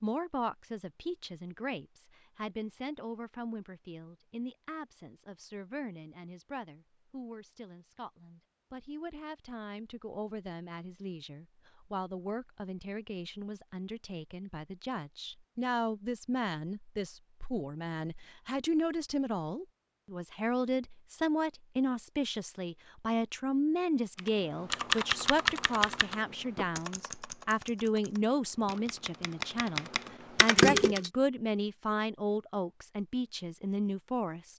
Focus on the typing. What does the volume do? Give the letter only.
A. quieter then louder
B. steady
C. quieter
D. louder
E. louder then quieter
A.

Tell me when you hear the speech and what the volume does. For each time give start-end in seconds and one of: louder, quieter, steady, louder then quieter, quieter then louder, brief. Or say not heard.
0.0-34.5 louder.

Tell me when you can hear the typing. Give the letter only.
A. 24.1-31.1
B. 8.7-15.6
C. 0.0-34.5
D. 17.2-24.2
A.